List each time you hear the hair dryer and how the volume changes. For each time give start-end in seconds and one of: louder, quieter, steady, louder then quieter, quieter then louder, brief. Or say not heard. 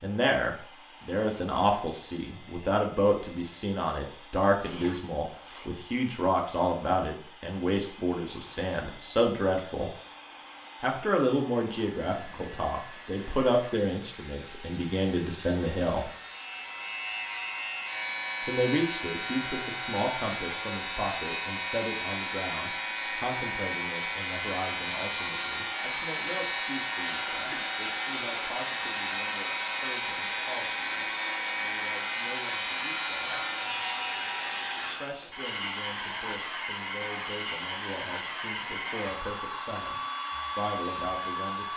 0.0-41.7 louder.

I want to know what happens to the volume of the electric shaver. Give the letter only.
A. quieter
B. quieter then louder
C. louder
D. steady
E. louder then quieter
D.